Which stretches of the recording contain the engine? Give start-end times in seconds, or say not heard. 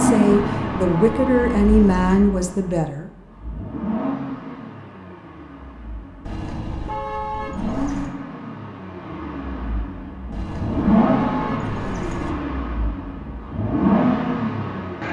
0.0-15.0.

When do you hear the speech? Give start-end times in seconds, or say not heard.
0.0-3.0.